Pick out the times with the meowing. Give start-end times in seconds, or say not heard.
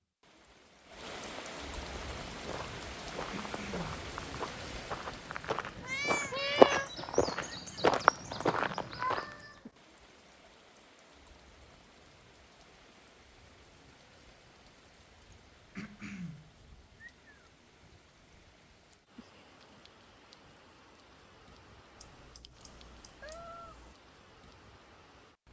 5.8-6.9, 8.9-9.7, 22.0-23.9.